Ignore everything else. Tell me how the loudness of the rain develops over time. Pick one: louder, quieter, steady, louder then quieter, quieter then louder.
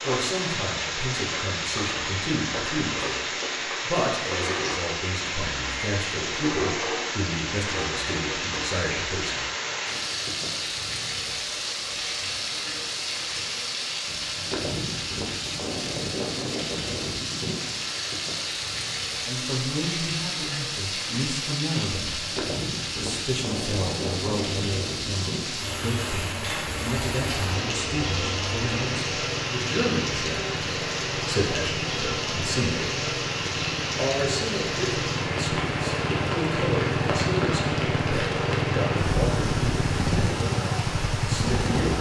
steady.